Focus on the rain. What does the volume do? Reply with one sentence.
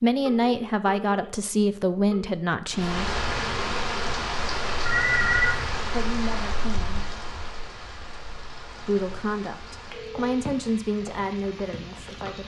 The loudness of the rain goes down.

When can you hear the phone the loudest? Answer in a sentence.
The loudest moment of the phone is at 5 seconds.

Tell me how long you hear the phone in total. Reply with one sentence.
You can hear the phone for 3 seconds altogether.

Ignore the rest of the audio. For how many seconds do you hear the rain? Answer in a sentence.
You can hear the rain for 10 seconds altogether.